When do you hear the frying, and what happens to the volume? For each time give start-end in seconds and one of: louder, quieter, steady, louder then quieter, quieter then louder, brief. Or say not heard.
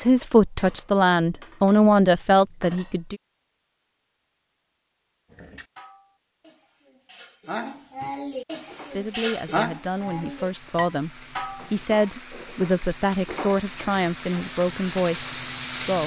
8.5-16.0 louder.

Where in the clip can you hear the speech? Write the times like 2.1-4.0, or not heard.
0.0-3.1, 8.9-16.0.